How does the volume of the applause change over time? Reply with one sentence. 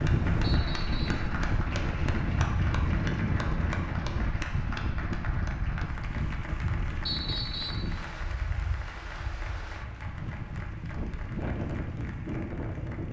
The volume of the applause goes down.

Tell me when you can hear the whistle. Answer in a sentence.
The whistle can be heard from 0.4 to 1.2 s and from 7.0 to 7.9 s.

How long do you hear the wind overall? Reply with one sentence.
The wind can be heard for 13 seconds in total.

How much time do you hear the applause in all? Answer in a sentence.
The applause can be heard for 13 seconds in total.